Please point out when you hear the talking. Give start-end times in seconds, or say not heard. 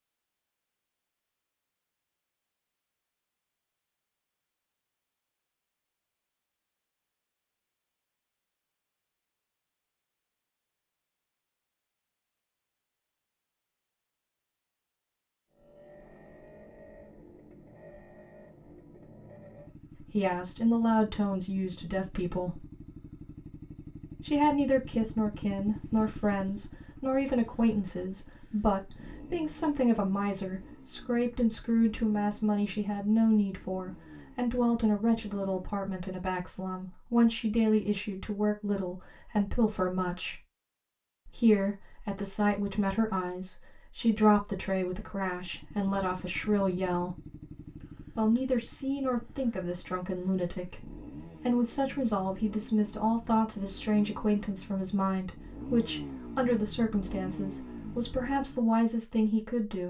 20.0-22.6, 24.2-40.4, 41.2-47.2, 48.1-59.8.